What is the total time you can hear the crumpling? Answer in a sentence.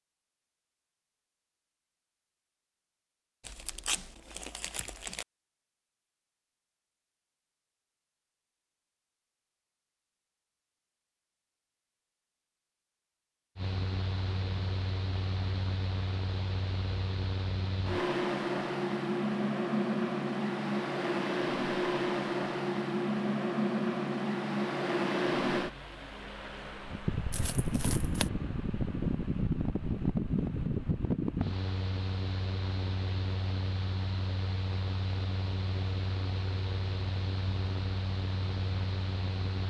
The crumpling can be heard for 3 seconds in total.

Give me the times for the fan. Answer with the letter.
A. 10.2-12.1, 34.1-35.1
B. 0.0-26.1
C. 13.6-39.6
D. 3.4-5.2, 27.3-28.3
C.